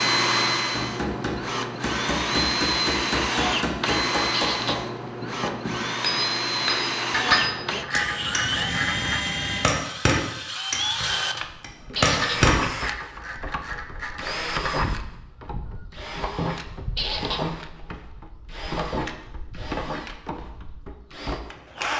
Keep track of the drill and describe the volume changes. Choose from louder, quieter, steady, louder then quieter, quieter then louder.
quieter.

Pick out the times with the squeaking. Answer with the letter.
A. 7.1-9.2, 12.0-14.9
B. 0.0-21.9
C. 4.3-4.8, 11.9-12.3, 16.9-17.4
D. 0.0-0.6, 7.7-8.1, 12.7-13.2
C.